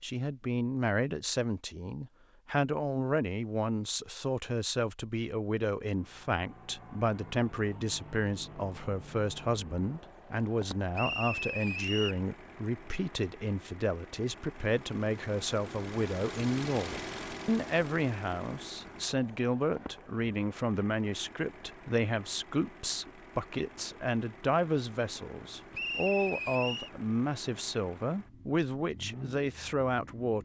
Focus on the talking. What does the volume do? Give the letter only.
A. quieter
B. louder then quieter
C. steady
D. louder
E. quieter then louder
C.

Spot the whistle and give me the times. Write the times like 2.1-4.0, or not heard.
10.9-12.2, 25.7-26.9.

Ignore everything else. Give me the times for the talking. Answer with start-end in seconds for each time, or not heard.
0.0-30.4.